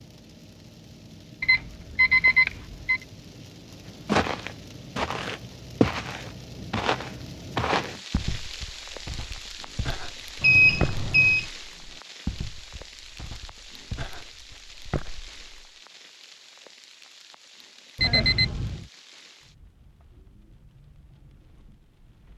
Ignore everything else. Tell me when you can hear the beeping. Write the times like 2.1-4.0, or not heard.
1.4-3.0, 10.4-11.4, 17.9-18.9.